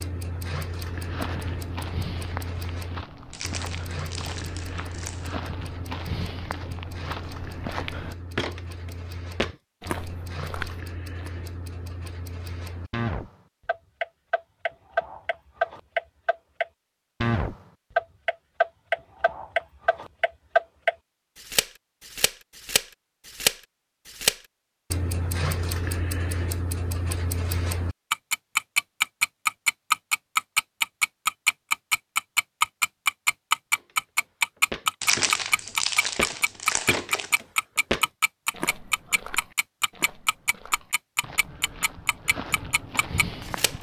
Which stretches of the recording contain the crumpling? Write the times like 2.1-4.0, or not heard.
3.3-5.5, 35.0-37.4.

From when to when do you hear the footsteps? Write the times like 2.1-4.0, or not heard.
0.8-11.3, 33.8-43.7.